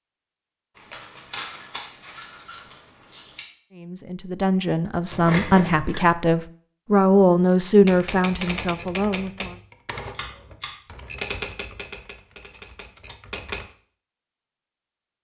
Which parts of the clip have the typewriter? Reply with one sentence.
The typewriter can be heard from 7.8 to 13.7 s.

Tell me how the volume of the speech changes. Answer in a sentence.
The loudness of the speech goes up, then down.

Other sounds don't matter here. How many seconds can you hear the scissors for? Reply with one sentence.
The scissors can be heard for 4 seconds in total.